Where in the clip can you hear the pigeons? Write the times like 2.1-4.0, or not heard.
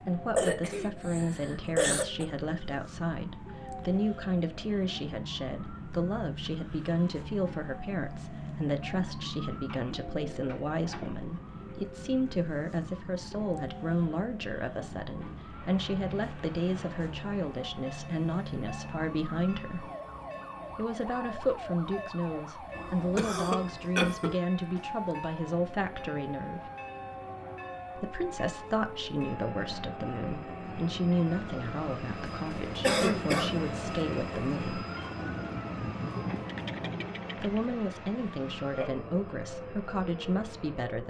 9.5-11.3, 35.1-37.2.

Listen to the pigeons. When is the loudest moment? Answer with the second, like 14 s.
36 s.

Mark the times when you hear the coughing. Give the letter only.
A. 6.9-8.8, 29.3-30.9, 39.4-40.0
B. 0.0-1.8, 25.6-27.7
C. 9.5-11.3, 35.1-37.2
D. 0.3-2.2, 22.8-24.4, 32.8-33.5
D.